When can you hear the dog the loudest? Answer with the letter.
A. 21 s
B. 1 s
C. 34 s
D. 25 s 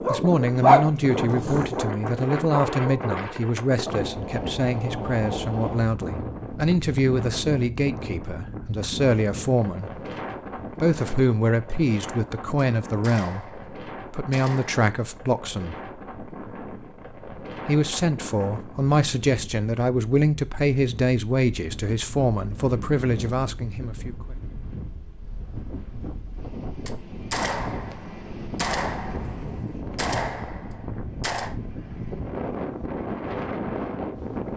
B.